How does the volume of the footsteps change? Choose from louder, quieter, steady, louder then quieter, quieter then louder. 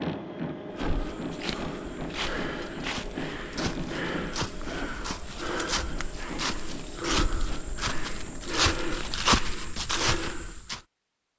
louder.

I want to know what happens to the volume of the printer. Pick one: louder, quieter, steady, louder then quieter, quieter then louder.
quieter.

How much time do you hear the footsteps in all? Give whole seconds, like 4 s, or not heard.
10 s.